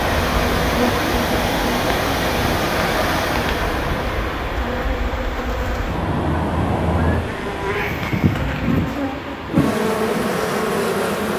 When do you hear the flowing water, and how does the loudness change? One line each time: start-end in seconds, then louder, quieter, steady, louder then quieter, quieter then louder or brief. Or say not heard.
0.0-11.3 quieter.